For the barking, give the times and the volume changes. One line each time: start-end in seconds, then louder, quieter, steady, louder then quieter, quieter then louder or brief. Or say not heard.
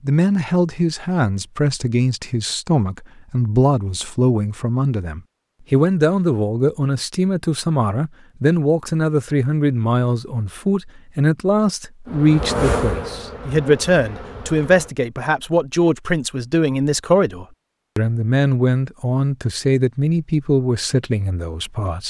not heard.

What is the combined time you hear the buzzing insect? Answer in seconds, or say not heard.
3 s.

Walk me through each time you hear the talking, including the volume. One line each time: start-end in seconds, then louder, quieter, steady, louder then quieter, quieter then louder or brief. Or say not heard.
0.0-22.0 steady.